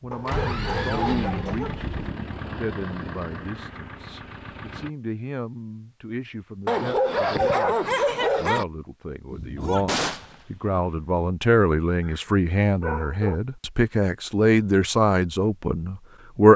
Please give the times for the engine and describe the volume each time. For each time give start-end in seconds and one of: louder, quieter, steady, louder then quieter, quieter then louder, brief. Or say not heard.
0.1-4.9 quieter.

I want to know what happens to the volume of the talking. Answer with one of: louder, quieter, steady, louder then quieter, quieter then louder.
louder.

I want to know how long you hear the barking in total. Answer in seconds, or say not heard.
5 s.